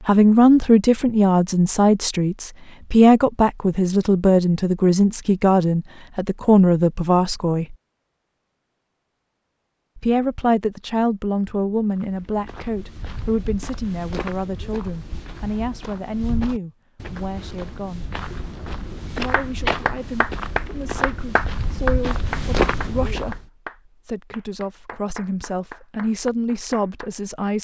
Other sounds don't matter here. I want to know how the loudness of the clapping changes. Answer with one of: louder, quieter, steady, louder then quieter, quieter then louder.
quieter.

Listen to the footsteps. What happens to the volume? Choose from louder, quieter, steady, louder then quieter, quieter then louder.
louder.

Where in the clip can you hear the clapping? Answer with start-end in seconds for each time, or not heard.
19.3-27.1.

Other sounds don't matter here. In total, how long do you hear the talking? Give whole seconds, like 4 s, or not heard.
24 s.